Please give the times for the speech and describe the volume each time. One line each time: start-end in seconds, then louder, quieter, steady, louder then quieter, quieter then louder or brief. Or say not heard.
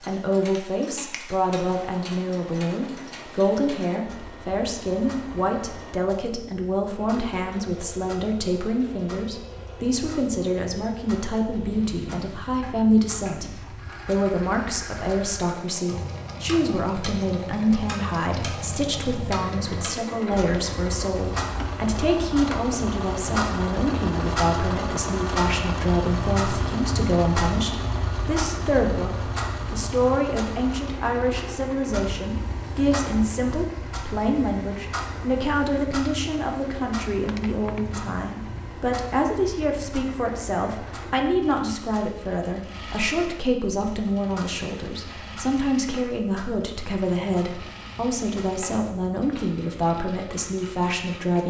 0.1-51.4 steady.